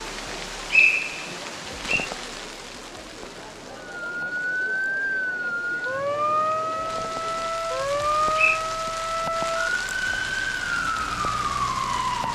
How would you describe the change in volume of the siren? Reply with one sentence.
The volume of the siren stays about the same.